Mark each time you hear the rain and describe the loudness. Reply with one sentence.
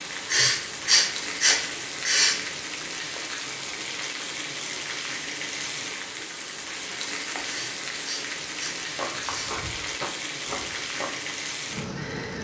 The rain can be heard from 0.0 to 12.3 s, at a steady volume.